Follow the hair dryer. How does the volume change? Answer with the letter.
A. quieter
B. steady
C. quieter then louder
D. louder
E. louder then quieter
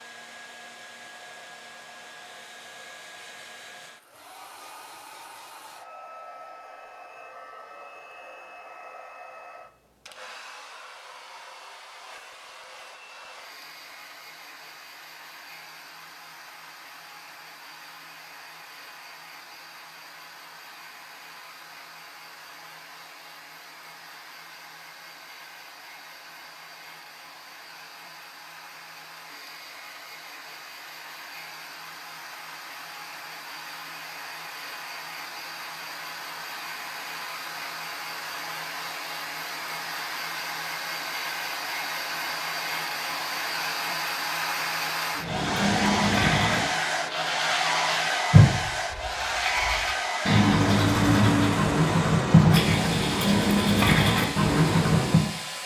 D.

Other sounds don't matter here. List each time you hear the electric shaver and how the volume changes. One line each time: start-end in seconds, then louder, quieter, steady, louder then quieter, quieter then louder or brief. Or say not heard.
not heard.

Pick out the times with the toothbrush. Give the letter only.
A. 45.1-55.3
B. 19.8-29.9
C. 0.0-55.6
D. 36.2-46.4
A.